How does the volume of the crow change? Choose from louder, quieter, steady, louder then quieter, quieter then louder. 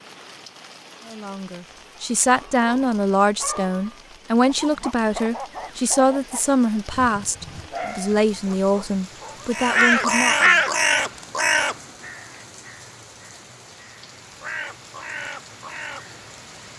quieter then louder.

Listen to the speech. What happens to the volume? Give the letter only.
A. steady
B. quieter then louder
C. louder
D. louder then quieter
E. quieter
A.